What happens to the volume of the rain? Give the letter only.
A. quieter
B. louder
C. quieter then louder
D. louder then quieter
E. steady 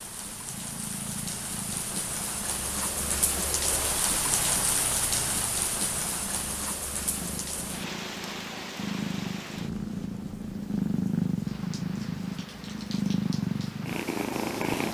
D.